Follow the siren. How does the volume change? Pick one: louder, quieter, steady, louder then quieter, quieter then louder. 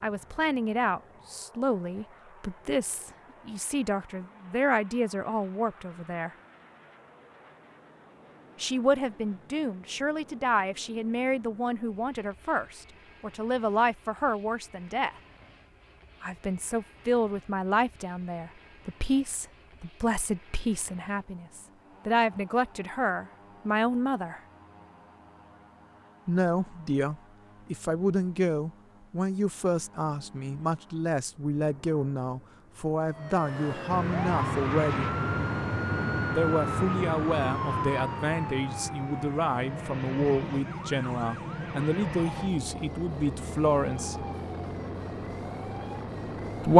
quieter.